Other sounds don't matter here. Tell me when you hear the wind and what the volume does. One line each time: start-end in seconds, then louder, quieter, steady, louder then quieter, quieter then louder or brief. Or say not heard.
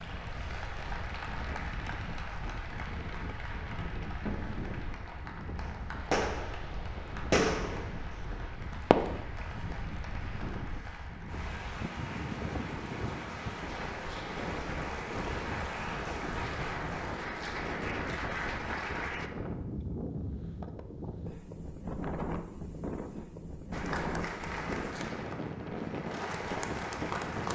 0.0-27.5 louder.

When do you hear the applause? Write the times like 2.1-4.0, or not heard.
0.0-19.3, 23.7-27.5.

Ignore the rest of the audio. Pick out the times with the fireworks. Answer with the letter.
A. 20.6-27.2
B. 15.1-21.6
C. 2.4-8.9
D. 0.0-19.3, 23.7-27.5
C.